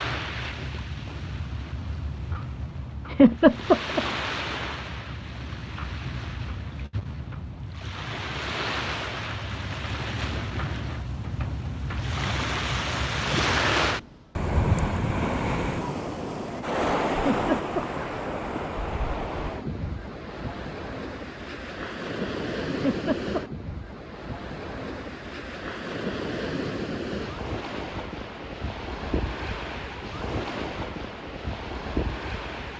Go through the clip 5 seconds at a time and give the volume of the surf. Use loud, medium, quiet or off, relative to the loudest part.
medium, medium, loud, loud, medium, medium, medium.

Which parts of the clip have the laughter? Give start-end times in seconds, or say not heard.
3.1-4.0, 17.1-17.9, 22.7-23.4.